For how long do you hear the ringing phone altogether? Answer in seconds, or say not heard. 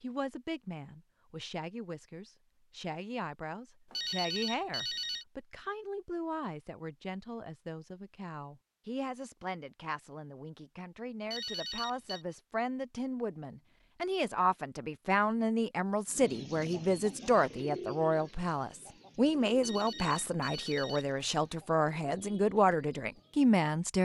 4 s.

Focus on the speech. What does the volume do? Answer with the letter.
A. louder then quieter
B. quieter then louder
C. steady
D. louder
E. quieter
D.